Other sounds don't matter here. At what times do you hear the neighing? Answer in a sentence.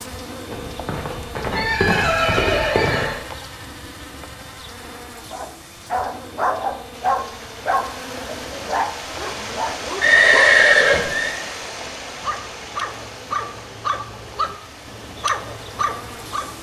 You can hear the neighing from 0.5 to 3.2 s and from 10.0 to 11.3 s.